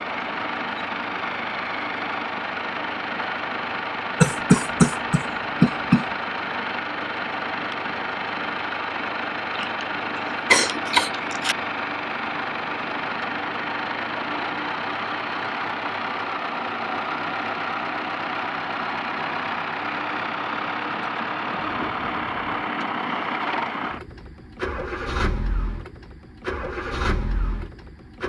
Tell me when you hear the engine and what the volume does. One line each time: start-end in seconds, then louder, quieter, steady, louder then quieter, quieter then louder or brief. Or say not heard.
0.0-28.2 steady.